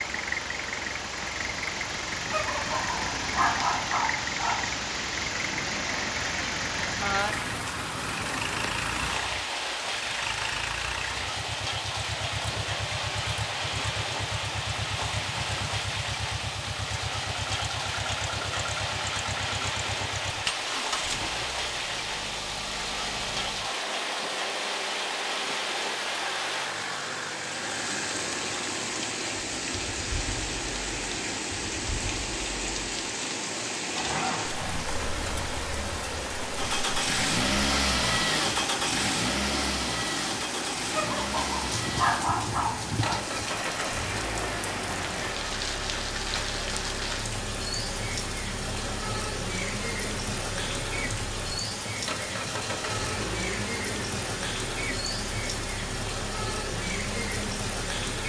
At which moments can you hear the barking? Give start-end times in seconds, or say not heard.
2.2-4.8, 40.9-43.2.